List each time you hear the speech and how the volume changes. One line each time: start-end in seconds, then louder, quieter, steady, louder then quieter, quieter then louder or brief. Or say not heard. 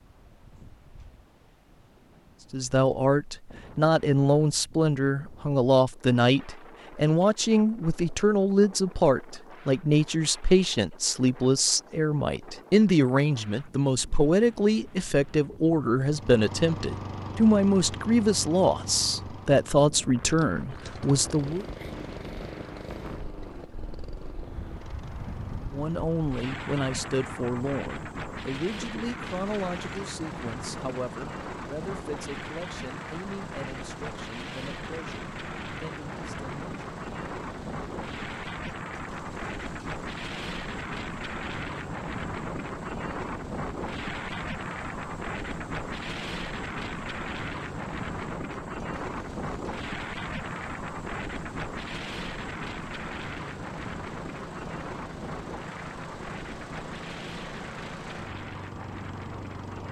2.5-21.6 steady
25.7-36.6 quieter.